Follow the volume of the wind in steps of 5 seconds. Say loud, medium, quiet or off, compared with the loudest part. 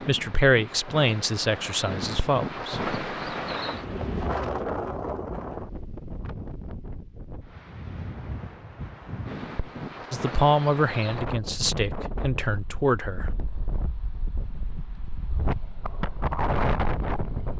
loud, medium, medium, loud.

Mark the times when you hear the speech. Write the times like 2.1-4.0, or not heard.
0.1-2.9, 10.1-13.3.